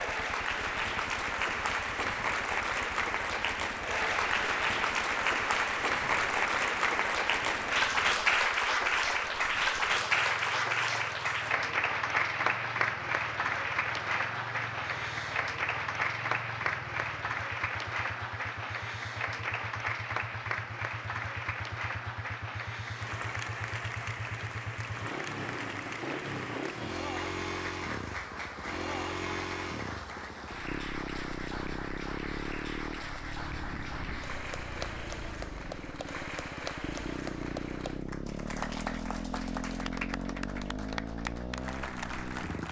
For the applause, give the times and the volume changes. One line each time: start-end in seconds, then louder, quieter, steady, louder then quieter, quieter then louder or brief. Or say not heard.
0.0-42.6 quieter.